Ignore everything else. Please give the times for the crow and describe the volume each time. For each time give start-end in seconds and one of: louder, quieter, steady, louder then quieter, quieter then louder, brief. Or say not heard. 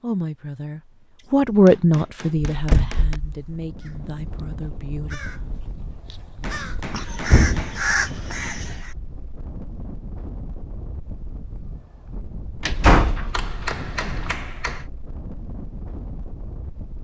3.8-8.9 louder.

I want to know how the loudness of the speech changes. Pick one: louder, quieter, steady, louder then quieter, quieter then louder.
louder then quieter.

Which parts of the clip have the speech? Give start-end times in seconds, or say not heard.
0.0-5.5.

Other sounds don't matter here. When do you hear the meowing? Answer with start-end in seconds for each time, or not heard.
not heard.